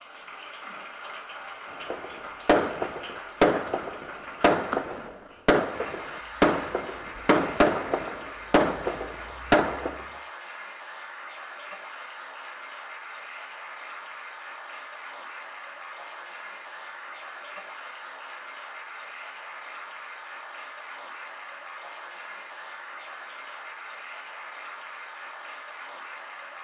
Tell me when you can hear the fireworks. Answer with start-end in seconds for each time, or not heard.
1.9-10.1.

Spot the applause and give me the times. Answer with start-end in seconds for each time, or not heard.
0.0-26.5.